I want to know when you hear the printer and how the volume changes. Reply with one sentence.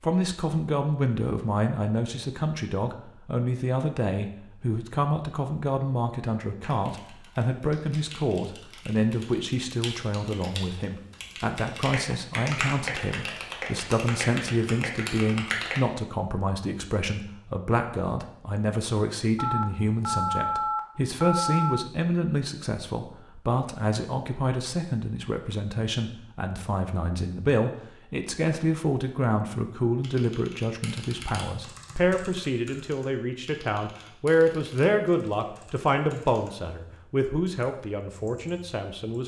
You can't hear the printer here.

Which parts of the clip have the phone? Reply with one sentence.
You can hear the phone from 19.4 to 21.9 s.